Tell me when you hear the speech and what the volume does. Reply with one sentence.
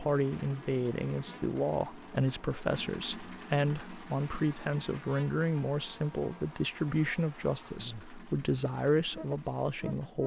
The speech can be heard from 0.0 to 10.2 s, at a steady volume.